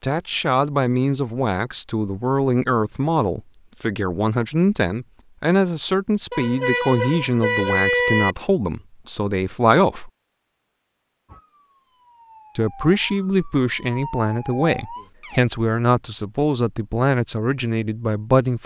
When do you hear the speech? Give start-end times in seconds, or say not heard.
0.0-10.1, 12.6-18.6.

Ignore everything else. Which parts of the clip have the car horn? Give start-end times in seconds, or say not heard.
6.3-8.3.